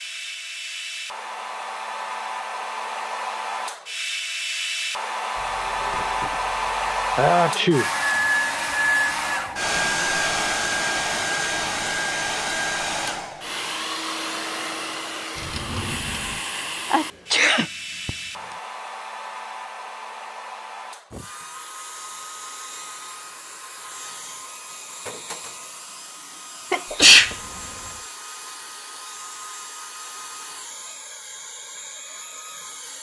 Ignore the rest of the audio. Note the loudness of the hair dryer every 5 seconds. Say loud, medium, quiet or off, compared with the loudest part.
medium, loud, loud, medium, quiet, quiet, quiet.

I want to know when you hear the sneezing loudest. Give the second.
27 s.